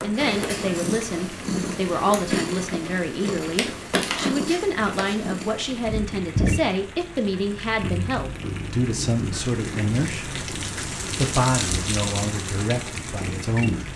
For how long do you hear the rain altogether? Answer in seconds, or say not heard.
14 s.